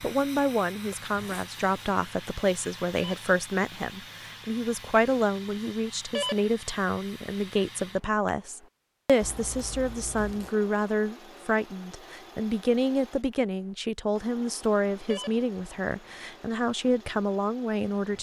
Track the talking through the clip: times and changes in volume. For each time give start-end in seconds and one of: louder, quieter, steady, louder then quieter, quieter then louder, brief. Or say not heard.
0.0-18.1 steady.